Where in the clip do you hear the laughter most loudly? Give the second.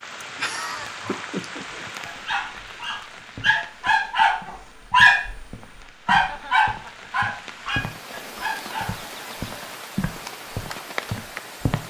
1 s.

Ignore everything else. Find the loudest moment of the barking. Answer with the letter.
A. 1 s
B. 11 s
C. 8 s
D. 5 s
D.